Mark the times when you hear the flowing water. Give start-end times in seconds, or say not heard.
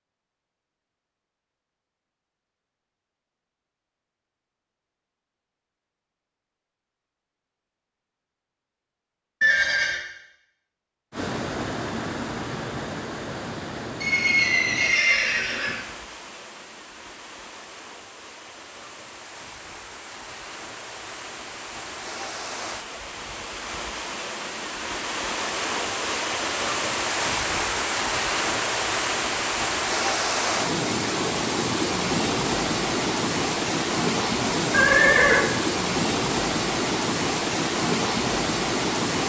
11.1-39.2.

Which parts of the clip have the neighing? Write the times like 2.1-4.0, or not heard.
9.4-10.0, 14.0-15.8, 34.7-35.5.